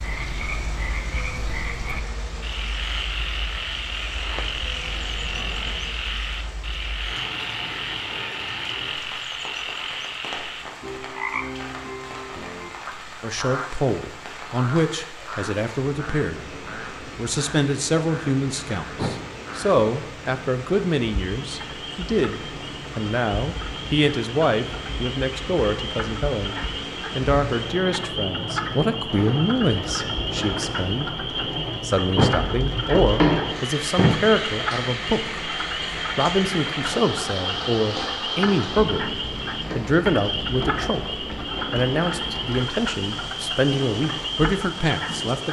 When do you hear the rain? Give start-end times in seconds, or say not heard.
0.0-45.4.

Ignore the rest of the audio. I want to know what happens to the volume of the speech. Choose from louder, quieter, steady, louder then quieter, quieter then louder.
steady.